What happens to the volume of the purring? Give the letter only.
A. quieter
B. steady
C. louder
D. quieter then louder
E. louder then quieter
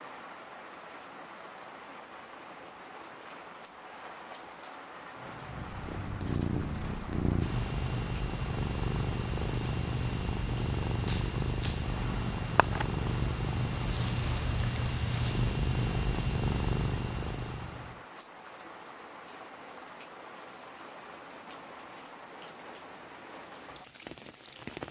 B.